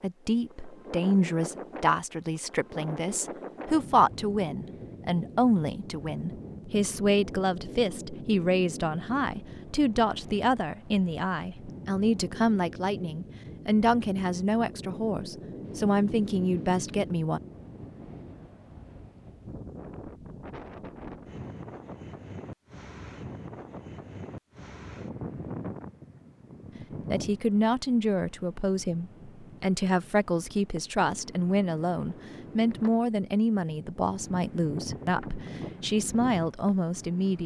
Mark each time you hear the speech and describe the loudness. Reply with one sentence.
You can hear the speech from 0.0 to 17.4 s, at a steady volume; and from 27.1 to 37.4 s, at a steady volume.